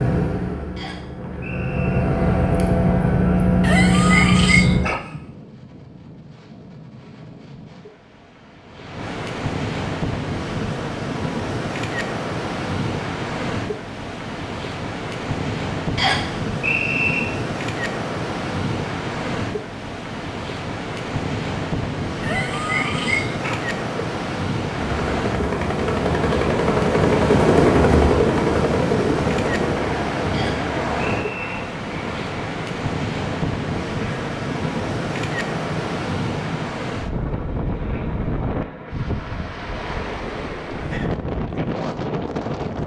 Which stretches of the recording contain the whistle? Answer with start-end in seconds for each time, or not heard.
0.8-2.0, 15.9-17.2, 30.3-31.6.